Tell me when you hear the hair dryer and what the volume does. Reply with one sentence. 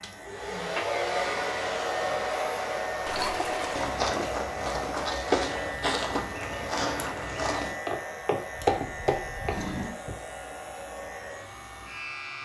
The hair dryer can be heard from 0.0 to 12.3 s, getting quieter.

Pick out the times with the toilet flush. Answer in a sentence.
The toilet flush can be heard from 3.0 to 4.0 s and from 8.5 to 10.0 s.